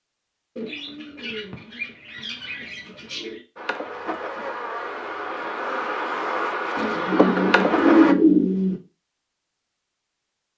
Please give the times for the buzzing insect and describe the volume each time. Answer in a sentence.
You can hear the buzzing insect from 3.5 to 8.2 s, getting louder.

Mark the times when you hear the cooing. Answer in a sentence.
You can hear the cooing from 0.6 to 3.4 s and from 6.8 to 8.8 s.